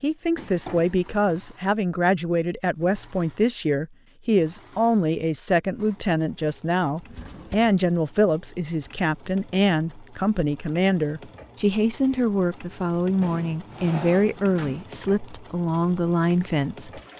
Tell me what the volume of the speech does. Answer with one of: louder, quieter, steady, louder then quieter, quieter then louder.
steady.